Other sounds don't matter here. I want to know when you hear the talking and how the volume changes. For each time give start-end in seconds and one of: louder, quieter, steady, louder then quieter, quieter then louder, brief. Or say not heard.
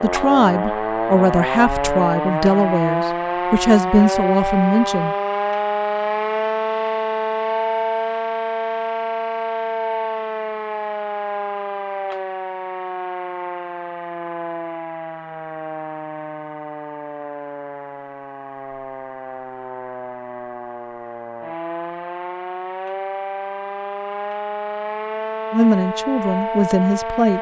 0.0-5.2 steady
25.5-27.3 brief.